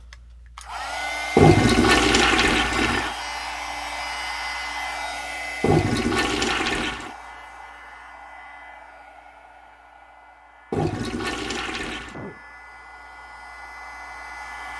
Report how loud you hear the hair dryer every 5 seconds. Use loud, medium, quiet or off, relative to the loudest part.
loud, medium, medium.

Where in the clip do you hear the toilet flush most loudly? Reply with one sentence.
The volume of the toilet flush peaks at 2 seconds.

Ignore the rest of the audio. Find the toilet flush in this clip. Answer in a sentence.
You can hear the toilet flush from 1.4 to 3.1 s, from 5.6 to 7.1 s and from 10.7 to 12.2 s.